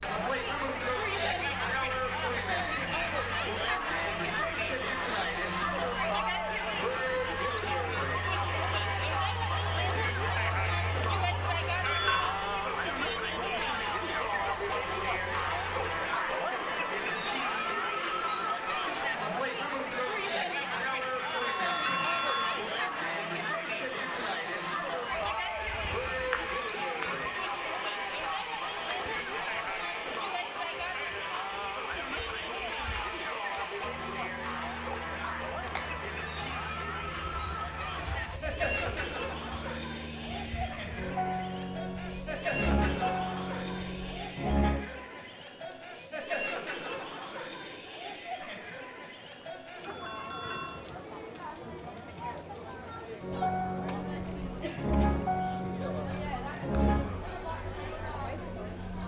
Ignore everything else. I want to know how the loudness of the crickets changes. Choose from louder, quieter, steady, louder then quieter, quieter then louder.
louder.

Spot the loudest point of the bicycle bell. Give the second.
12 s.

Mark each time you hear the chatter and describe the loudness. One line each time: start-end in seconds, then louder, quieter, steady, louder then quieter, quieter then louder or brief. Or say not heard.
0.0-59.0 quieter.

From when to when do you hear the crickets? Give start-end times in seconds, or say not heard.
0.0-59.0.